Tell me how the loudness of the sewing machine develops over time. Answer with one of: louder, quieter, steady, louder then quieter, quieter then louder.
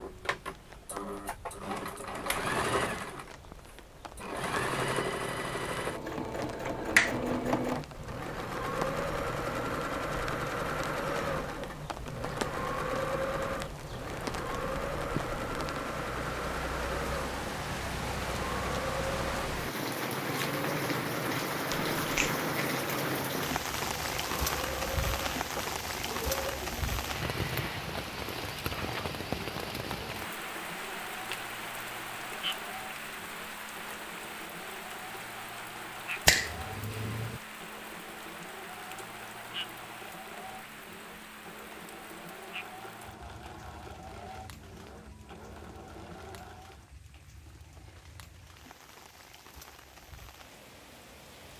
quieter.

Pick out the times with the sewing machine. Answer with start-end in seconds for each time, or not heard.
0.0-46.9.